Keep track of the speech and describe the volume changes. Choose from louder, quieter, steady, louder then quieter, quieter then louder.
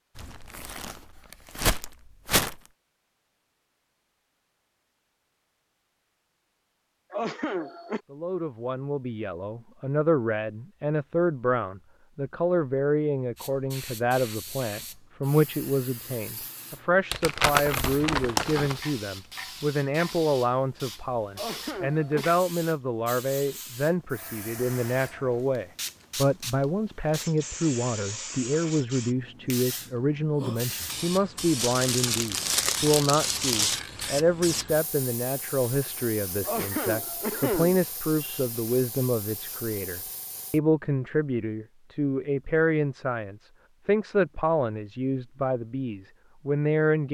steady.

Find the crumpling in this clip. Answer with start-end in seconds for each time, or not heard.
0.1-2.6, 17.1-18.8, 31.6-33.8.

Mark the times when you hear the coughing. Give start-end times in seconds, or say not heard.
7.1-8.0, 21.4-22.4, 36.4-38.5.